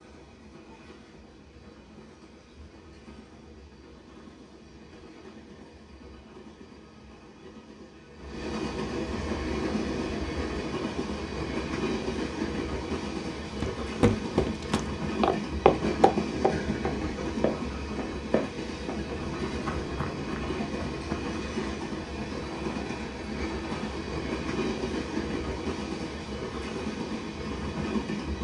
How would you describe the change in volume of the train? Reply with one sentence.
The volume of the train goes up.